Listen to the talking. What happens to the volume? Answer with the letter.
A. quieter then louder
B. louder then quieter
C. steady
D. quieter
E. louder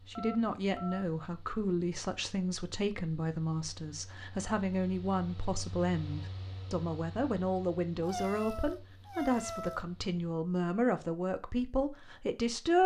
C.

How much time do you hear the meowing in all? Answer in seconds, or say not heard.
2 s.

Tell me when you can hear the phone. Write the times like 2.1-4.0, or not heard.
0.1-1.1.